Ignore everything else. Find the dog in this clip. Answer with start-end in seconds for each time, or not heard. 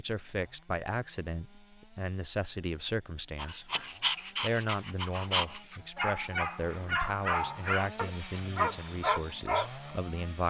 3.4-9.9.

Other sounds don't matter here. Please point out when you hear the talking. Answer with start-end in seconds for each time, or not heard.
0.0-3.7, 4.4-10.4.